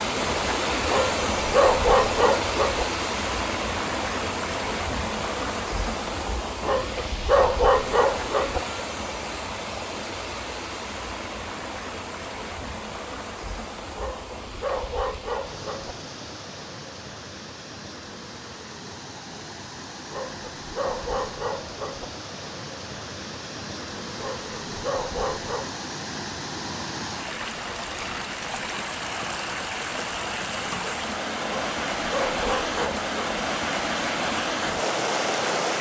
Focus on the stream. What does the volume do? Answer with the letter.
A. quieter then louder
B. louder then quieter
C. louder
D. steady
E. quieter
A.